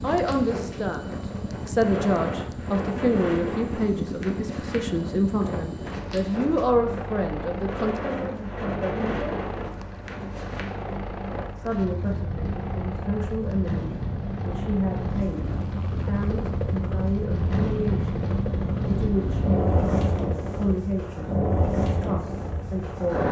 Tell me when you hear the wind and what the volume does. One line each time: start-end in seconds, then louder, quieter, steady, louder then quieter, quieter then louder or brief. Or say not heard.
0.0-23.2 louder.